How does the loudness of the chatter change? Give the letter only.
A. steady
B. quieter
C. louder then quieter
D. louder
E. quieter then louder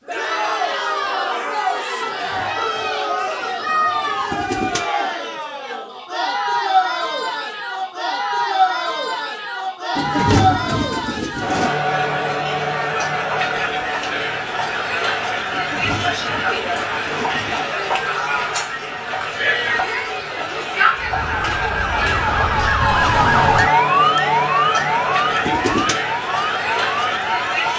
A.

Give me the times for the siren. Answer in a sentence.
You can hear the siren from 20.9 to 27.7 s.